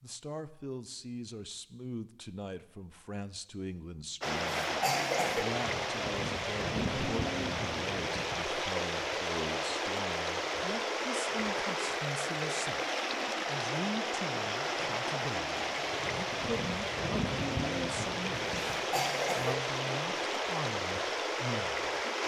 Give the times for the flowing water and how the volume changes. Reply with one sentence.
The flowing water can be heard from 4.2 to 22.2 s, at a steady volume.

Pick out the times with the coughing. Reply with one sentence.
You can hear the coughing from 4.3 to 5.5 s and from 18.4 to 19.6 s.